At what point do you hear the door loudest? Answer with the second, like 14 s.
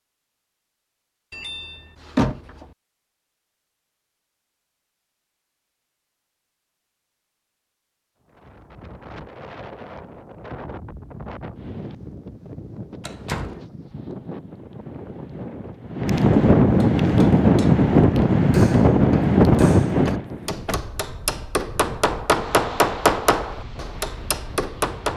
2 s.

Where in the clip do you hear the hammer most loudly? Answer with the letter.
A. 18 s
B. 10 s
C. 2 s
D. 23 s
D.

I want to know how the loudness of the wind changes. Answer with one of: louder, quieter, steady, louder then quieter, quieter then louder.
louder then quieter.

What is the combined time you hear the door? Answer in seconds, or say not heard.
3 s.